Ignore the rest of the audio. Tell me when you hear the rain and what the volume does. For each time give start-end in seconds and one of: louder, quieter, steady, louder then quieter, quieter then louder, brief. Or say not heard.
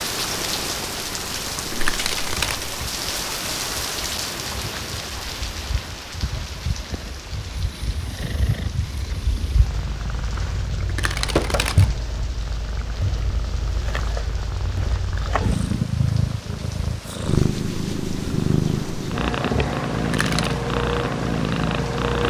0.0-22.2 quieter.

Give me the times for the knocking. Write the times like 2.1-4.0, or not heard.
11.3-11.8.